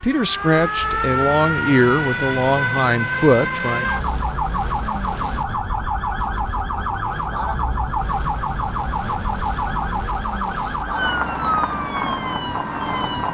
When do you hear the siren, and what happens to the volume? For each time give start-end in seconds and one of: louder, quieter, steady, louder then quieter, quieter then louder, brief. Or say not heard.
0.0-13.2 steady.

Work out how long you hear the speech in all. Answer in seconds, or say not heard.
4 s.